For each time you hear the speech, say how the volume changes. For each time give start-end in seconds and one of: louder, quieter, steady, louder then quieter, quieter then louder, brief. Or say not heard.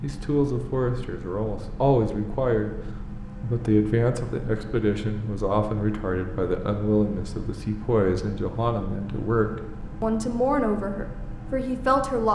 0.0-2.7 brief
3.4-12.2 steady.